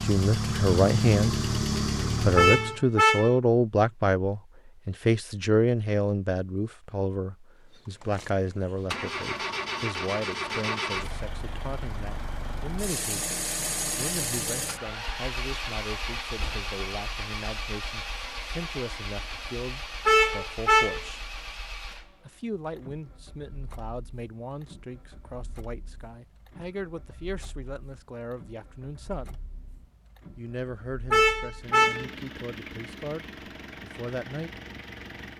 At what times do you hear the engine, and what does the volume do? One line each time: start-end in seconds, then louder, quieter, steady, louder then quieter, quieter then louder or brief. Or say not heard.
0.0-2.8 brief
7.7-35.3 quieter then louder.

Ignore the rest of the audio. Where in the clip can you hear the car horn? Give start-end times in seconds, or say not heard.
2.4-3.3, 20.1-21.0, 31.1-32.0.